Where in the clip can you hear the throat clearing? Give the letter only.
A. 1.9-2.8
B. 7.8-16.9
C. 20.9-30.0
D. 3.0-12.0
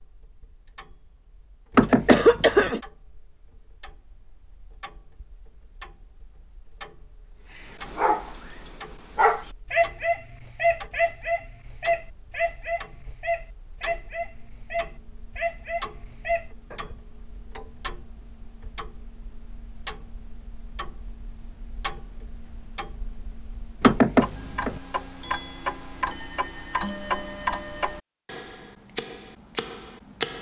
A.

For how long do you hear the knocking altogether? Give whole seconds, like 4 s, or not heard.
2 s.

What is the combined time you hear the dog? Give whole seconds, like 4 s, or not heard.
9 s.